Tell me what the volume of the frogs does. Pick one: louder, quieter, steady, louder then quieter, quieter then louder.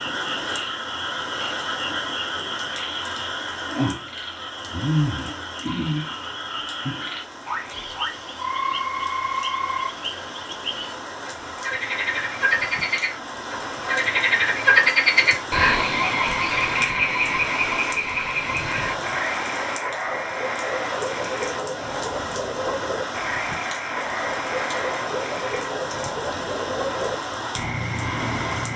louder then quieter.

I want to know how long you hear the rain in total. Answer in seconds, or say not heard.
29 s.